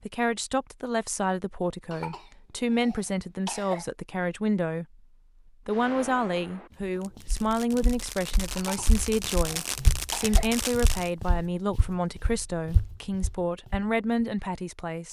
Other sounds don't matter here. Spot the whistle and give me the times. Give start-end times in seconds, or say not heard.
not heard.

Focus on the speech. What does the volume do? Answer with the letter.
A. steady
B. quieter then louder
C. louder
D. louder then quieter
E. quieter
A.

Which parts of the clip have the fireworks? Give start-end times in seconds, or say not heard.
5.7-11.1.